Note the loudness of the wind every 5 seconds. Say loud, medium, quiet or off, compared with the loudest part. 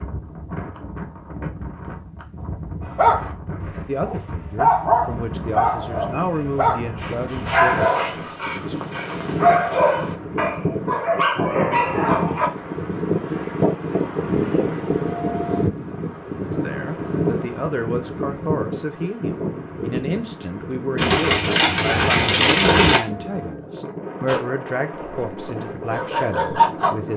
medium, medium, loud, loud, medium, medium.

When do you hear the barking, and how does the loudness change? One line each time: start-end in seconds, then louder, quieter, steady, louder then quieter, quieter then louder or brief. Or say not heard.
2.9-12.5 steady
24.2-27.1 brief.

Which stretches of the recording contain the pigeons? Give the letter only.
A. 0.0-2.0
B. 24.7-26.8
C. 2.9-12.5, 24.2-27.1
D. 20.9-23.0
D.